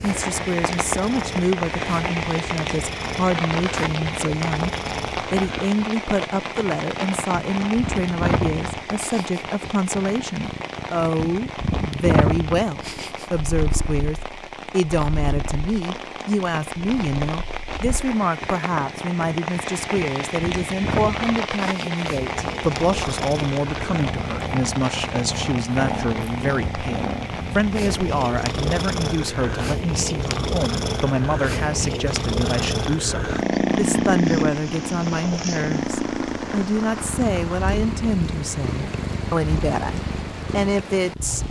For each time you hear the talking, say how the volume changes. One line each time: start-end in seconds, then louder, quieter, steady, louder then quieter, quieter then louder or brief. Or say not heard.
0.0-41.4 steady.